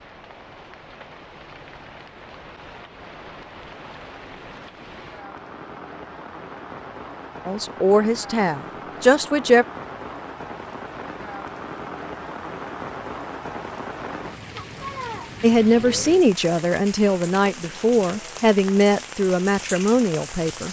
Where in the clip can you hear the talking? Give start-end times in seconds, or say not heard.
7.5-9.7, 15.4-20.6.